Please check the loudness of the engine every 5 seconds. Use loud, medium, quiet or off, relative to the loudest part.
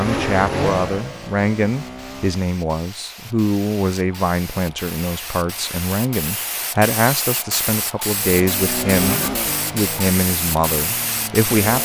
loud, loud, medium.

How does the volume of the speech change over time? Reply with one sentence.
The volume of the speech stays about the same.